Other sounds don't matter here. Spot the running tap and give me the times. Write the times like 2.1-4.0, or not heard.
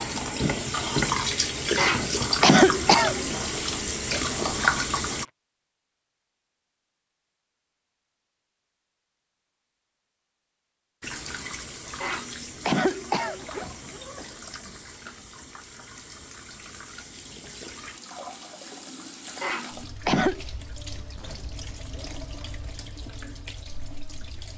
0.0-5.2, 11.0-24.5.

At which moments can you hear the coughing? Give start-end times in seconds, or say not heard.
1.8-3.4, 12.0-13.4, 19.4-20.4.